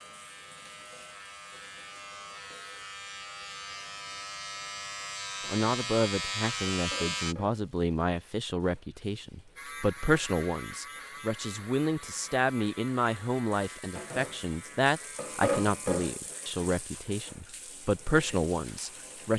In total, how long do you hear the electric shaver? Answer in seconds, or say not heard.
14 s.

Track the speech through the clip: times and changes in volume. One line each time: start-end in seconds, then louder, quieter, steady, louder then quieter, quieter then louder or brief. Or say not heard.
5.5-19.3 steady.